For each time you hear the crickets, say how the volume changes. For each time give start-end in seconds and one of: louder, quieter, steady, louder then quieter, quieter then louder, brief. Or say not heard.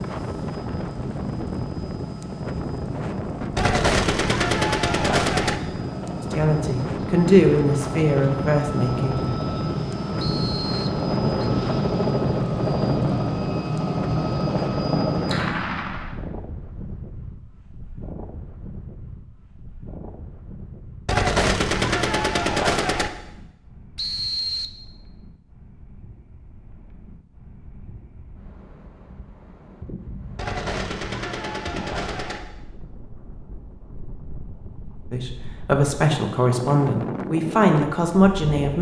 not heard.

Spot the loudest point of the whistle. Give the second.
24 s.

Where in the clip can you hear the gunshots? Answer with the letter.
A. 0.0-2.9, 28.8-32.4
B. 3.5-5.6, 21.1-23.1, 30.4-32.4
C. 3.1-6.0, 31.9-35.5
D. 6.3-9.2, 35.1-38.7
B.